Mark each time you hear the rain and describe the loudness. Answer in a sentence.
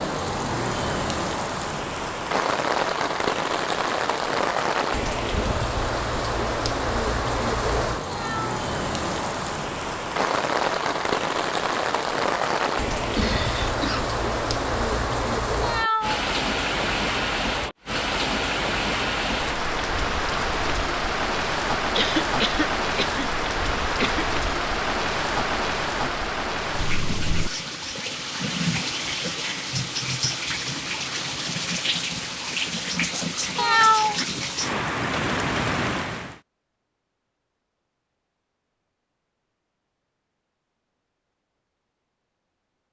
The rain can be heard from 0.0 to 36.4 s, at a steady volume.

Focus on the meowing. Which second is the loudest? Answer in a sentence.
The loudest moment of the meowing is at 34 seconds.